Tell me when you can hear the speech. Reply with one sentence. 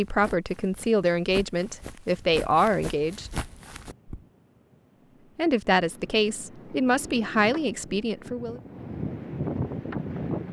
The speech can be heard from 0.0 to 3.3 s and from 5.3 to 8.6 s.